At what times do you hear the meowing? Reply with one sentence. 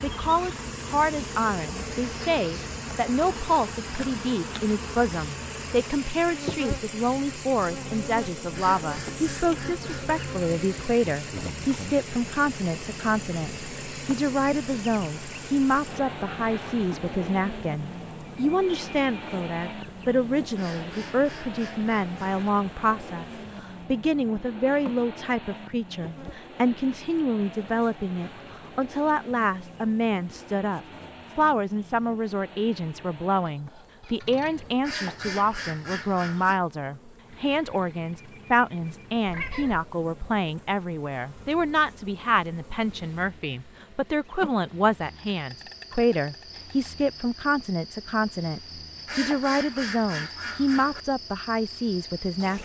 The meowing can be heard from 39.2 to 39.9 s.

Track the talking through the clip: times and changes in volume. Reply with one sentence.
You can hear the talking from 0.0 to 52.6 s, at a steady volume.